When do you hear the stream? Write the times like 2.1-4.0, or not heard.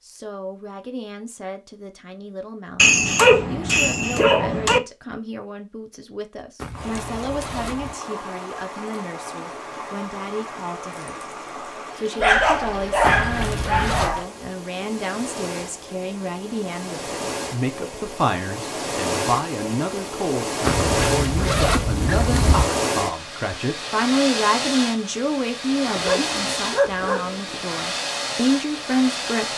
6.7-29.5.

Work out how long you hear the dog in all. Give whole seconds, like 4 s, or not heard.
6 s.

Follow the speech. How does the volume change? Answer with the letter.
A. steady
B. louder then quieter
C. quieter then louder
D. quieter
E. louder
E.